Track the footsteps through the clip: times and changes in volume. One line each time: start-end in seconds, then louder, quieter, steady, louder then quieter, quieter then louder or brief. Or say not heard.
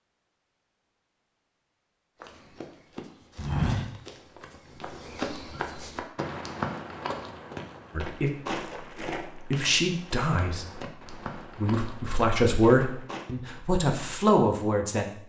2.2-13.3 quieter.